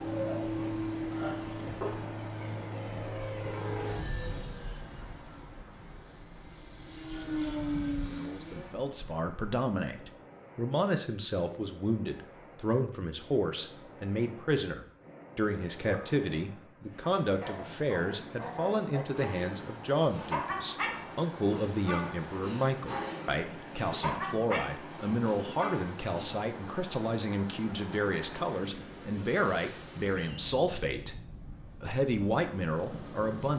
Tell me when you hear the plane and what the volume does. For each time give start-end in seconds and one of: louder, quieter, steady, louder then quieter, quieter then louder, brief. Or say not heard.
0.0-8.8 quieter then louder.